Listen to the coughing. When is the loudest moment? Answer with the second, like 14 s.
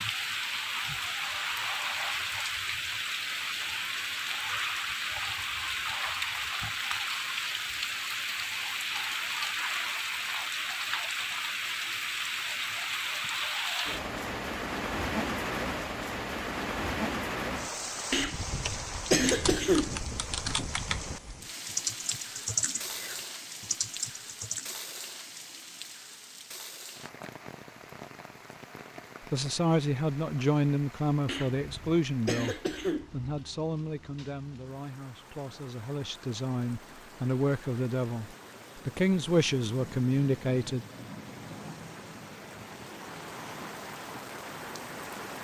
19 s.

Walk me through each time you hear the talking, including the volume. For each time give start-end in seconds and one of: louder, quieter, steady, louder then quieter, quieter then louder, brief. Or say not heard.
29.3-40.9 quieter then louder.